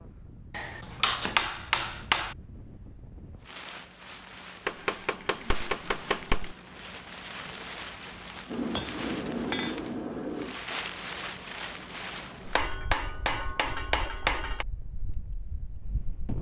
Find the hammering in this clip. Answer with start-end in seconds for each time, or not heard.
0.5-2.4, 4.7-6.5, 8.5-10.6, 12.6-14.7.